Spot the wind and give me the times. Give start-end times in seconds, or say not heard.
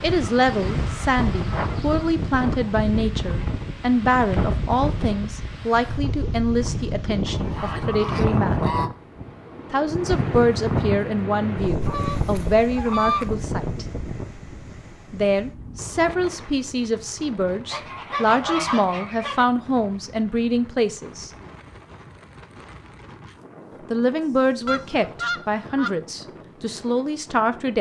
0.0-27.7.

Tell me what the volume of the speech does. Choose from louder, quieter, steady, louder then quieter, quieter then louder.
steady.